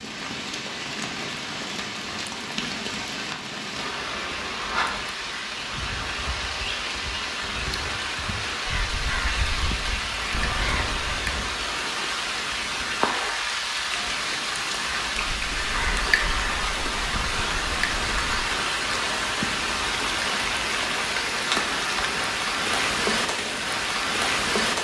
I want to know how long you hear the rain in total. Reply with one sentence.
The rain can be heard for 25 seconds in total.